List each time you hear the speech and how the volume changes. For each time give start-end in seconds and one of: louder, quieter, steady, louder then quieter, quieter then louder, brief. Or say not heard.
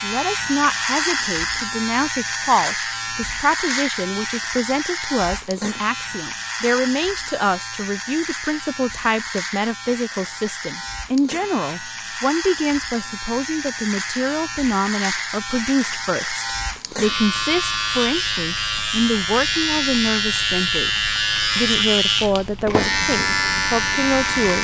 0.0-24.5 steady.